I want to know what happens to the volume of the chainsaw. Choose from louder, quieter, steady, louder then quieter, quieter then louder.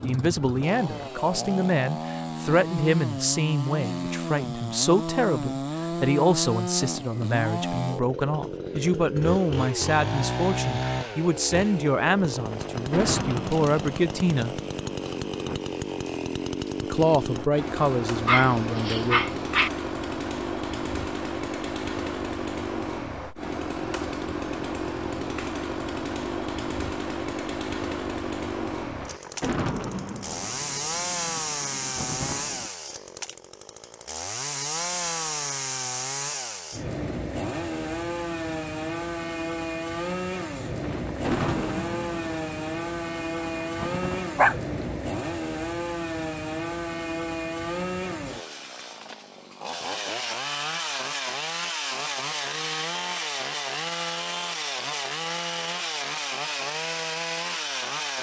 steady.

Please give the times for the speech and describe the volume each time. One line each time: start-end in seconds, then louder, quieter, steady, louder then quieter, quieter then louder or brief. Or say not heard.
0.0-14.6 steady
16.8-19.2 brief.